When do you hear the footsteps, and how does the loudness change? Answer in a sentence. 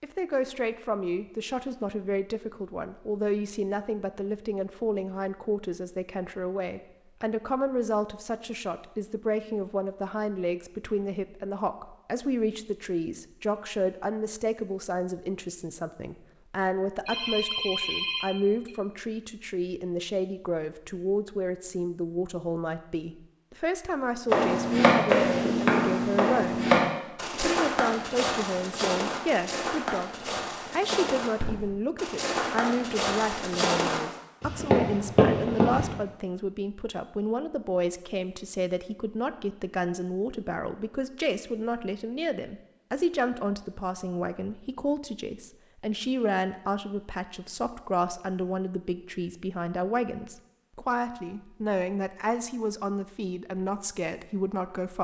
The footsteps can be heard from 24.2 to 35.9 s, getting quieter then louder.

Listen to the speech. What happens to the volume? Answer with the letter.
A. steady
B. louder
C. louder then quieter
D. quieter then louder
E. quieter
A.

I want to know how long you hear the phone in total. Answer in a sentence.
The phone can be heard for 2 seconds in total.